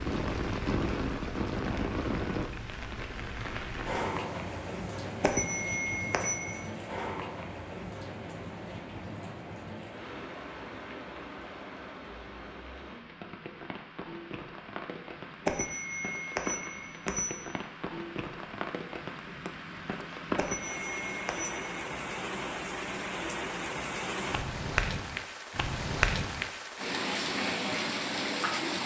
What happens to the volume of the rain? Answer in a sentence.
The loudness of the rain goes down, then up.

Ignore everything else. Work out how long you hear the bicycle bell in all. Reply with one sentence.
You can hear the bicycle bell for 5 seconds altogether.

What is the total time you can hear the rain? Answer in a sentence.
The rain can be heard for 29 seconds in total.